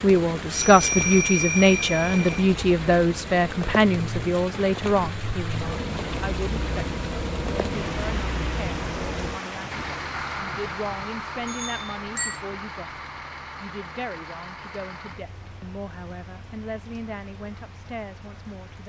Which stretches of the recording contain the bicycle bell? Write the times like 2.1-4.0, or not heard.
0.5-2.5, 11.4-12.4.